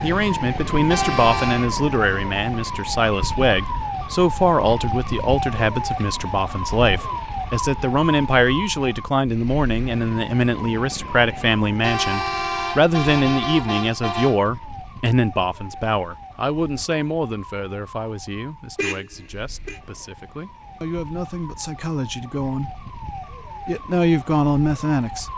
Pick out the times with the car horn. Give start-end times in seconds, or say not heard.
0.9-1.7, 11.8-14.5, 18.8-19.8.